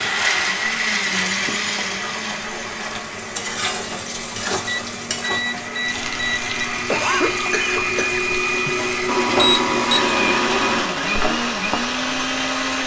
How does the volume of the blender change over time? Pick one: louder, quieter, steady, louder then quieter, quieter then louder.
quieter then louder.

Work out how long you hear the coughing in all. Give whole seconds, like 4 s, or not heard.
2 s.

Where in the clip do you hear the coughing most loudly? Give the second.
7 s.